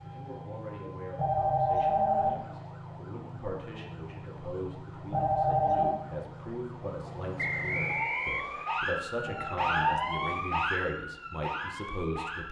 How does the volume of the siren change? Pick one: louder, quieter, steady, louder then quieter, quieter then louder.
louder.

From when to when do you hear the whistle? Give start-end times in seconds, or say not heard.
7.3-8.7.